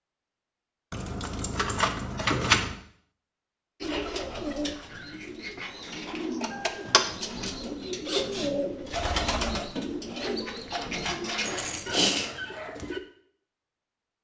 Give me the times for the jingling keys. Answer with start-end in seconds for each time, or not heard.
0.9-2.8, 5.7-7.5, 11.4-12.3.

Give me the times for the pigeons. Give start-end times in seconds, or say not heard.
3.8-13.0.